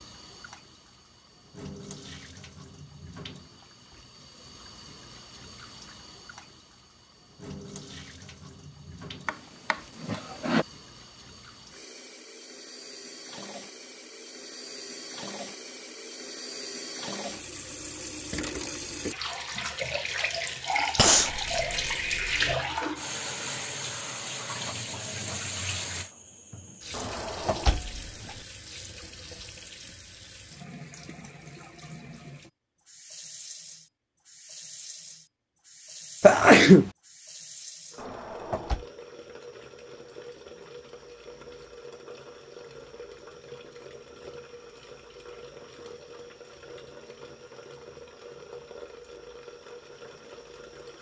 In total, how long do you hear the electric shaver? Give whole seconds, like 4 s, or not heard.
not heard.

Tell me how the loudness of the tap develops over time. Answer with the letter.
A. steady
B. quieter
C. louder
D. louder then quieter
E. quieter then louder
D.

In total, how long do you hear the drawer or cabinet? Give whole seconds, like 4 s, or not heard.
4 s.